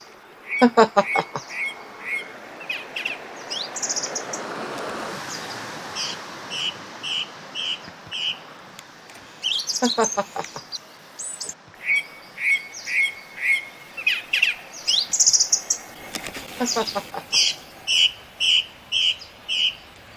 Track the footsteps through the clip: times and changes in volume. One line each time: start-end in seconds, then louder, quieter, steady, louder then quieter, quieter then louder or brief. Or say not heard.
not heard.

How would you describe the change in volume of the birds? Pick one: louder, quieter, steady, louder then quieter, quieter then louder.
louder.